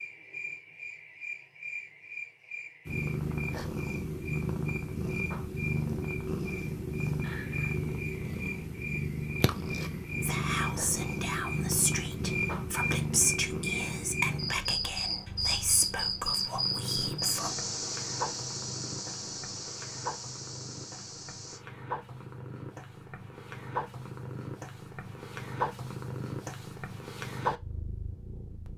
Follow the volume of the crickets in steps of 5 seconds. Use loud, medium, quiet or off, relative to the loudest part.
medium, medium, loud, loud, medium, off.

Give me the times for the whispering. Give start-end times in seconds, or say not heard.
10.2-17.6.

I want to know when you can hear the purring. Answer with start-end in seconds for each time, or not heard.
2.9-28.7.